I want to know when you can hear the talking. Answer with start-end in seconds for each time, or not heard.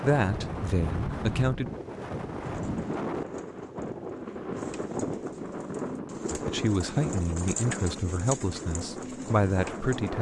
0.0-1.7, 6.3-10.1.